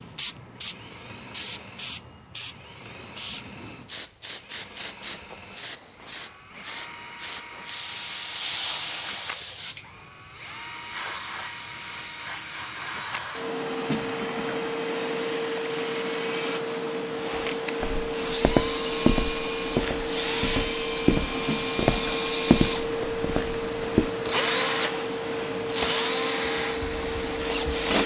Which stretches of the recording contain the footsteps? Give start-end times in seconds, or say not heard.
17.8-24.1.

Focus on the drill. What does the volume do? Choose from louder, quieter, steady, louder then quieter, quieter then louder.
louder.